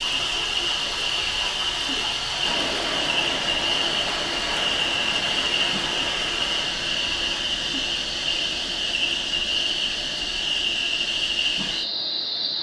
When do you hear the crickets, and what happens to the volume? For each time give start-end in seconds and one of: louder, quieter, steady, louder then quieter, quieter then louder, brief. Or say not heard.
0.0-12.5 steady.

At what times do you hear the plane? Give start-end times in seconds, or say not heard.
2.4-12.5.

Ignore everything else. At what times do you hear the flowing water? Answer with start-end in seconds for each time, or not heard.
0.0-6.8.